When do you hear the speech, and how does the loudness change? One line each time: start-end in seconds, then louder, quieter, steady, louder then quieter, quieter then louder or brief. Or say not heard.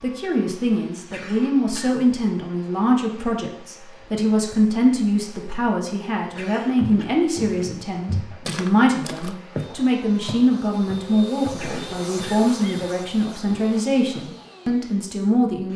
0.0-15.7 steady.